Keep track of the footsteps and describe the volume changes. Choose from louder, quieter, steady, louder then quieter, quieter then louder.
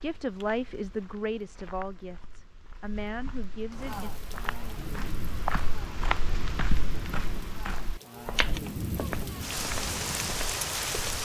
louder then quieter.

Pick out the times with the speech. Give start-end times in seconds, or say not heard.
0.0-4.1.